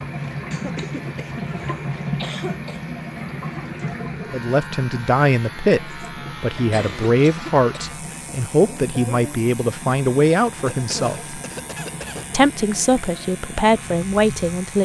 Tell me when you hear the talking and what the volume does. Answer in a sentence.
The talking can be heard from 4.3 to 11.4 s, at a steady volume; and briefly from 12.3 to 14.8 s.